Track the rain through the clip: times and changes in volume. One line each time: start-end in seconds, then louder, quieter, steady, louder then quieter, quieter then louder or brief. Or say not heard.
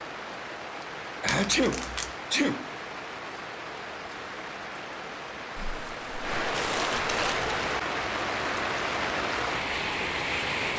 0.0-10.7 louder.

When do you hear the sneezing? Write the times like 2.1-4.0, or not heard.
1.2-2.7, 5.5-6.3.